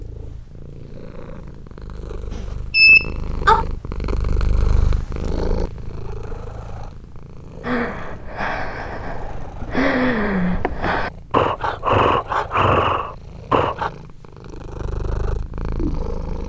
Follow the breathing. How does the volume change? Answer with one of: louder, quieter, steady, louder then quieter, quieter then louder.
louder.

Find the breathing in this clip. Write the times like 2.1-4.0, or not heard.
7.6-13.9.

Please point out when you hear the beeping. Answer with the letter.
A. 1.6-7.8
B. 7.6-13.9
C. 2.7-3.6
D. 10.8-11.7
C.